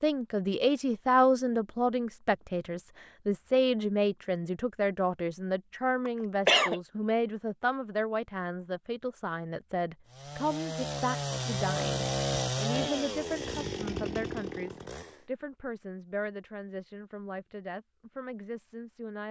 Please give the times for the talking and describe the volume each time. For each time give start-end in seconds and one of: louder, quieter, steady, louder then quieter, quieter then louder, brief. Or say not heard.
0.0-19.2 quieter.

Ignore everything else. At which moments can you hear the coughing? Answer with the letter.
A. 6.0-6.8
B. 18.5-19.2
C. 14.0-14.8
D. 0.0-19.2
A.